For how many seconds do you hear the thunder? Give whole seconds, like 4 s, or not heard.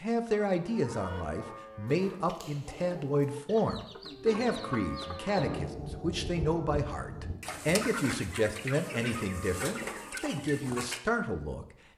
2 s.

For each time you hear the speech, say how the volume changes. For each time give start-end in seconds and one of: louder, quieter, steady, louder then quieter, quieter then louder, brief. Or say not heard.
0.0-11.7 steady.